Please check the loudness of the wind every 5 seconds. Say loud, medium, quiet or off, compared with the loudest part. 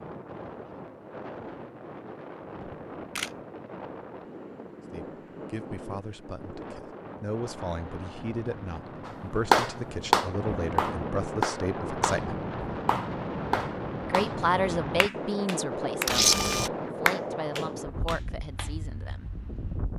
medium, medium, loud, loud.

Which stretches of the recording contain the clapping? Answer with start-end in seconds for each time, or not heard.
9.1-14.3, 15.0-18.7.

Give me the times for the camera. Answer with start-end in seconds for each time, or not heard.
2.6-3.3, 16.1-16.7.